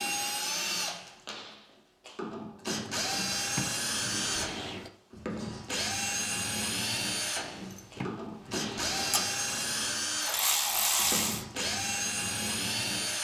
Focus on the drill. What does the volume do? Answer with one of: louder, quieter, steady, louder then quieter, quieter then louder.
steady.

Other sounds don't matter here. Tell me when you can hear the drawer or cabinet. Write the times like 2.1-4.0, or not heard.
2.9-4.9, 7.3-9.3.